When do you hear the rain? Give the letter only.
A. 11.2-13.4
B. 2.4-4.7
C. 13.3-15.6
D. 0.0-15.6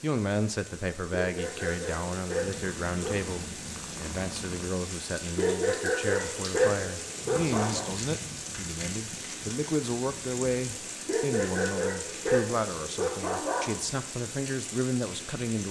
D.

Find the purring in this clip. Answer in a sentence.
The purring can be heard from 2.4 to 4.7 s.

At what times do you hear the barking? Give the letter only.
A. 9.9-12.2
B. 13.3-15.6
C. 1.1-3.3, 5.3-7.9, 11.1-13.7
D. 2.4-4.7
C.